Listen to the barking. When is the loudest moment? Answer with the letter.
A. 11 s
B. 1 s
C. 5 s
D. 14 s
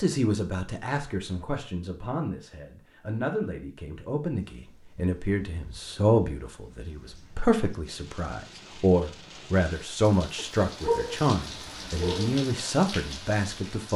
A.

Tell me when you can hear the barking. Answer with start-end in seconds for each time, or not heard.
10.3-12.4.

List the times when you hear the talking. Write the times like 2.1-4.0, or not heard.
0.0-13.9.